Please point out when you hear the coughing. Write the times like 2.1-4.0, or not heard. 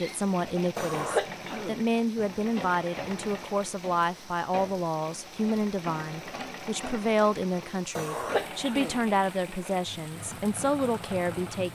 0.8-1.8, 8.0-9.0.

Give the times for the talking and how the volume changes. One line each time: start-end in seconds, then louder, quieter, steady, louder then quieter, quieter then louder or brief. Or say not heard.
0.0-11.6 steady.